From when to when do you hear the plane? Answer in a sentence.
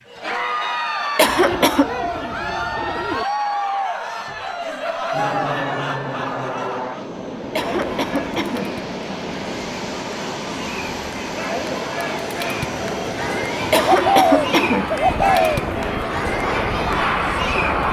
The plane can be heard from 5.1 to 17.8 s.